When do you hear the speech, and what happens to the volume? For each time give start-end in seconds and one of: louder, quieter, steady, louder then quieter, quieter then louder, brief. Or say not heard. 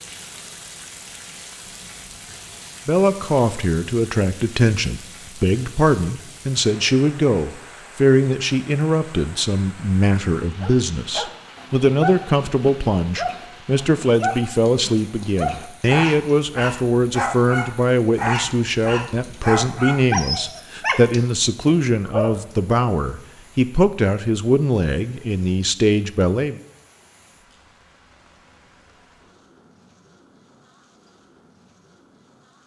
2.9-26.6 steady.